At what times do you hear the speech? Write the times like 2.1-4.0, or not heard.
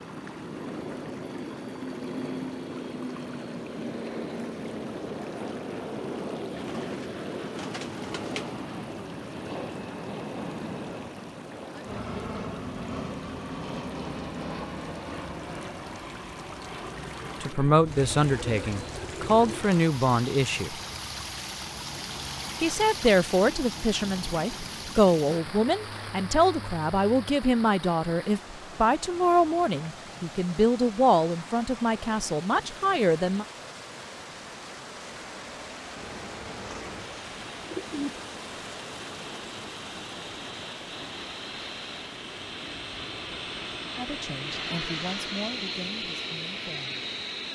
17.4-20.8, 22.6-33.5, 44.0-47.0.